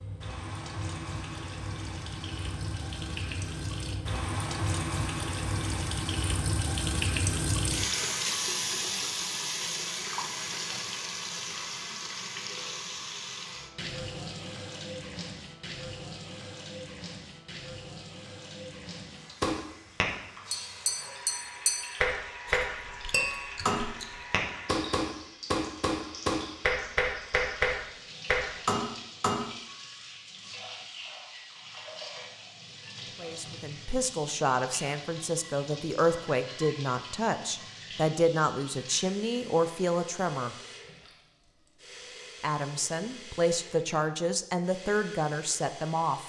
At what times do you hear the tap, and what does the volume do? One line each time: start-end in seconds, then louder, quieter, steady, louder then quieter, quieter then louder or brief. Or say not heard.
0.0-46.2 quieter.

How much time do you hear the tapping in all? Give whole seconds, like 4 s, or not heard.
10 s.